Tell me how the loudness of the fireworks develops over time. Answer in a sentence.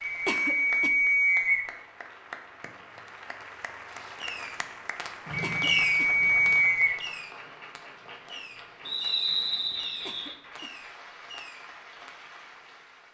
The loudness of the fireworks goes down.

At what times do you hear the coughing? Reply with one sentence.
The coughing can be heard from 0.2 to 0.9 s, from 5.4 to 6.2 s and from 10.1 to 10.8 s.